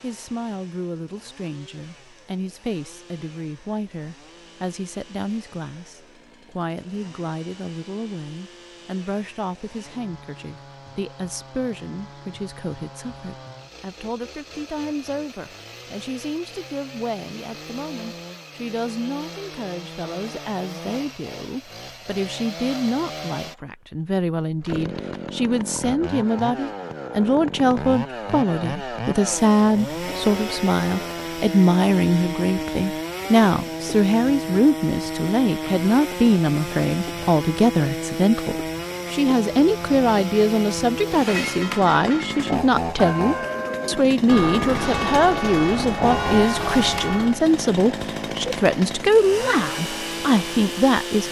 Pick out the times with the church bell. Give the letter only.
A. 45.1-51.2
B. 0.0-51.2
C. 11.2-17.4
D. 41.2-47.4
D.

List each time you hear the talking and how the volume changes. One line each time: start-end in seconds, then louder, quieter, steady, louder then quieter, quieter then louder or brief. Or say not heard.
0.0-51.2 louder.